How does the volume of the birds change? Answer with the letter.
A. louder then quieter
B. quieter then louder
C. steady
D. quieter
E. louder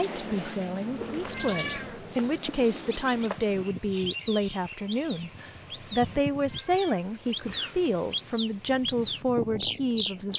B.